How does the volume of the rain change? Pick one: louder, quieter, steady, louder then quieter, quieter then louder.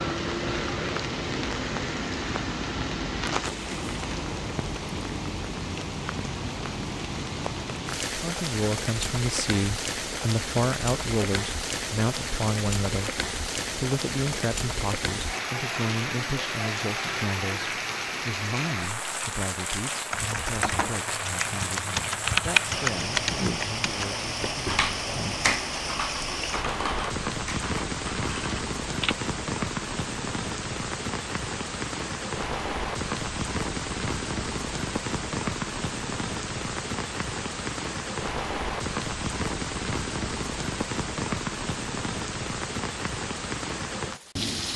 steady.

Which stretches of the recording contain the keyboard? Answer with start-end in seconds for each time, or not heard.
20.1-29.2.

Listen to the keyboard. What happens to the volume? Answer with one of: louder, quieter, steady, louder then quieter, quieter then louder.
louder then quieter.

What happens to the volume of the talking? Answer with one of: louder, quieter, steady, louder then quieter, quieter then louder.
quieter.